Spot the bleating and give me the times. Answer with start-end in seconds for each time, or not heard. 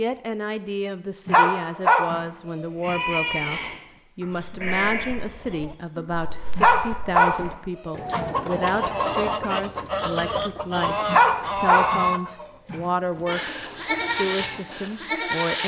2.8-6.0, 13.2-15.6.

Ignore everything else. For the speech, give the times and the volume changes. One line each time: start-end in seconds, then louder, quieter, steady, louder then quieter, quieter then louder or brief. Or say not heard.
0.0-15.6 steady.